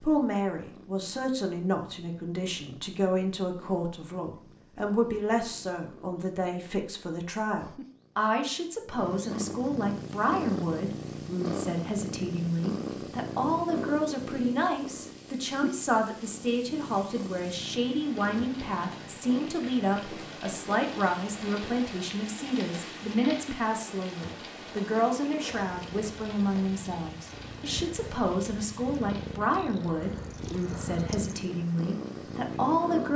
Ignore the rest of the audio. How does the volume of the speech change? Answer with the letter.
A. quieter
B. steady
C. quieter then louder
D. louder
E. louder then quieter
B.